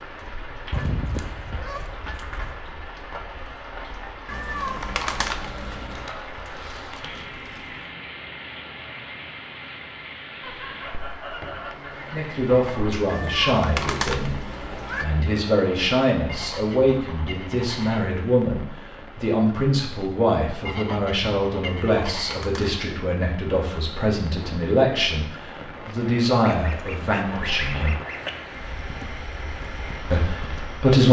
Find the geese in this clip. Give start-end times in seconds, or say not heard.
0.7-2.6, 5.4-7.8, 10.4-13.0, 16.2-18.1, 20.6-22.4, 26.4-28.3.